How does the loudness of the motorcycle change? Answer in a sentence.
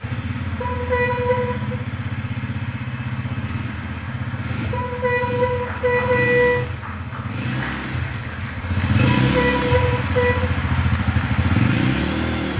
The volume of the motorcycle goes up.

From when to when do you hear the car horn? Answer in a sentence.
The car horn can be heard from 0.6 to 1.8 s, from 4.7 to 6.7 s and from 9.1 to 10.5 s.